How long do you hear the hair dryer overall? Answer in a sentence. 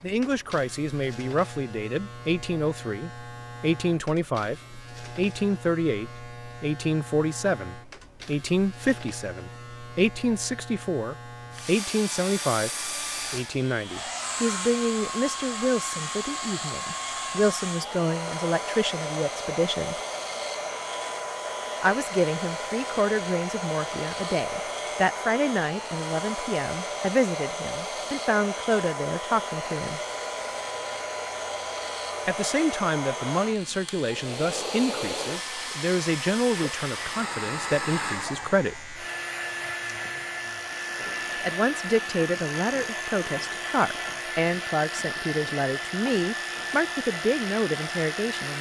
You can hear the hair dryer for 37 seconds altogether.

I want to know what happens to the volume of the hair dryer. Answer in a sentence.
The volume of the hair dryer stays about the same.